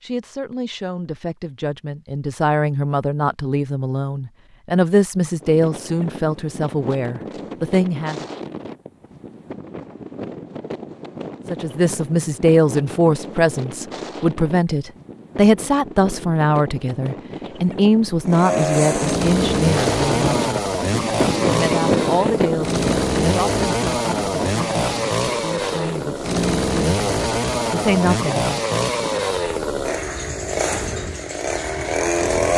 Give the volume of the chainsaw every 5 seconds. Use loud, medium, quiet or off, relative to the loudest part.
off, off, off, loud, loud, loud, loud.